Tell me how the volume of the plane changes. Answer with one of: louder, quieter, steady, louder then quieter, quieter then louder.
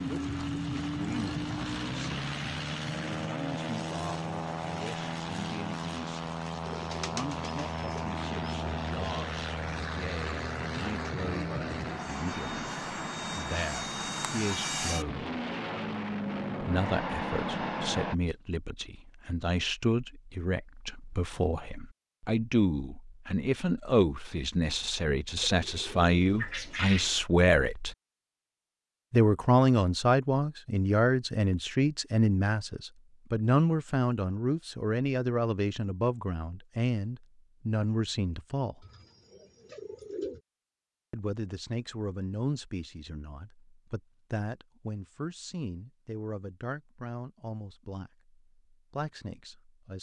steady.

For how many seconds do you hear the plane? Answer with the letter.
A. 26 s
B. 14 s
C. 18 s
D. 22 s
C.